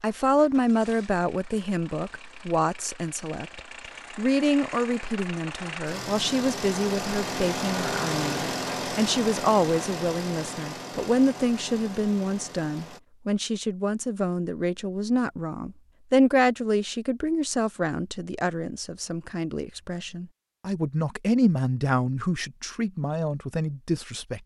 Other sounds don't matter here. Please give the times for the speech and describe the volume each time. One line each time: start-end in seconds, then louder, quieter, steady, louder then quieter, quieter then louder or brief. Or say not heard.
0.0-24.4 steady.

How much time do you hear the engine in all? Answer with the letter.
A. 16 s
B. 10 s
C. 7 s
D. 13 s
D.